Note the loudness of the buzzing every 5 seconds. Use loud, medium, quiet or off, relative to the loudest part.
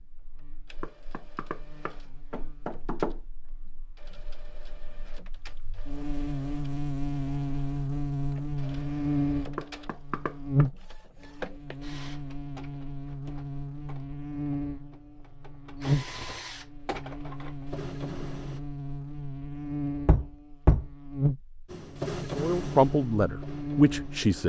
quiet, loud, loud, loud, loud.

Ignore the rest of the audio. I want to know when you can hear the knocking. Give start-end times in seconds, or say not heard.
0.8-3.2, 9.6-10.7, 20.1-20.9.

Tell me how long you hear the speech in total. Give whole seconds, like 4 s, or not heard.
2 s.